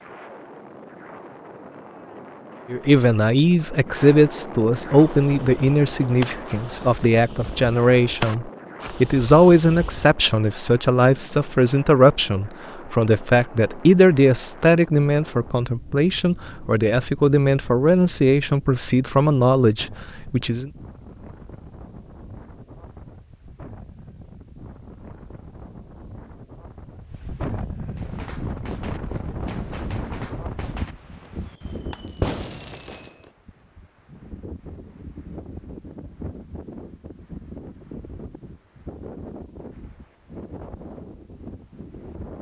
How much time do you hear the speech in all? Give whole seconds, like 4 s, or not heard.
18 s.